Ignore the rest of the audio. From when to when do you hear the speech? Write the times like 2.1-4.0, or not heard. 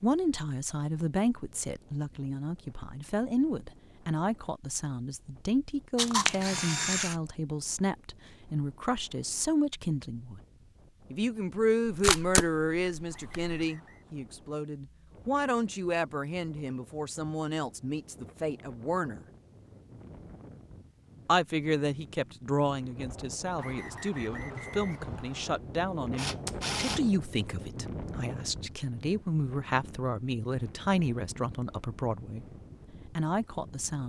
0.0-10.4, 11.1-19.2, 21.2-32.5, 33.1-34.0.